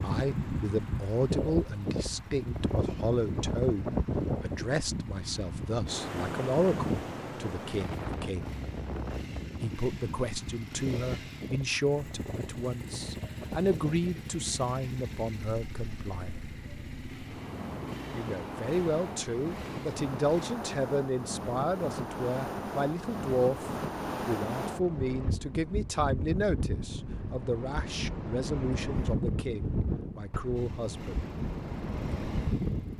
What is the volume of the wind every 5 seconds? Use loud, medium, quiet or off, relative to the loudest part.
loud, loud, medium, medium, loud, loud, loud.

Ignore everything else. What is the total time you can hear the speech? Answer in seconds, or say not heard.
28 s.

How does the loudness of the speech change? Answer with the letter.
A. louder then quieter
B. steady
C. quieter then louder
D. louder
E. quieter
B.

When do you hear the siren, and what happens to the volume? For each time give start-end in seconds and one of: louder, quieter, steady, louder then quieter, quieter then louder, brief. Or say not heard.
not heard.